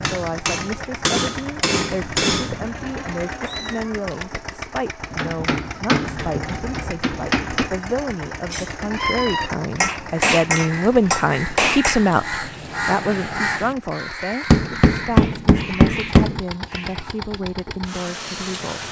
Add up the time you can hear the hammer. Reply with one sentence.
You can hear the hammer for 9 seconds altogether.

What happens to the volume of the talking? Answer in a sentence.
The volume of the talking goes up, then down.